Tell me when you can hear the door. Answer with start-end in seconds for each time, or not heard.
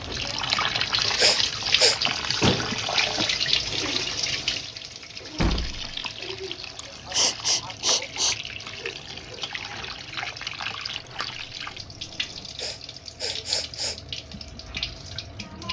2.4-3.2, 5.3-6.0, 10.9-12.4.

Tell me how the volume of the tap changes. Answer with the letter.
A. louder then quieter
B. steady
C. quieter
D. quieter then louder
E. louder
C.